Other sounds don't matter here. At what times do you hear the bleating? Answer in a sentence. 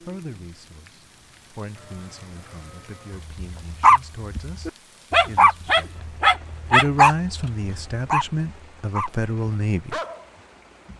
The bleating can be heard from 1.7 to 3.3 s.